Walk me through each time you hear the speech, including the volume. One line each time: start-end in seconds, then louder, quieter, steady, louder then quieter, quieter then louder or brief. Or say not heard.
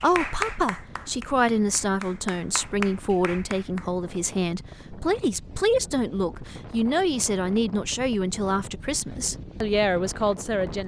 0.0-10.8 steady.